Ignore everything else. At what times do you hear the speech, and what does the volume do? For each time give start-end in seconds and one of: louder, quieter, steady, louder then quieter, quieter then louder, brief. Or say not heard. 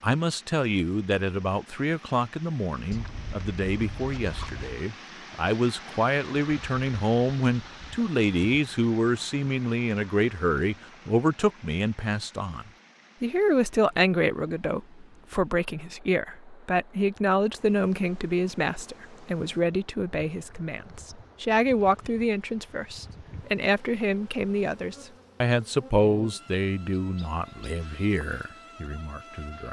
0.0-29.6 steady.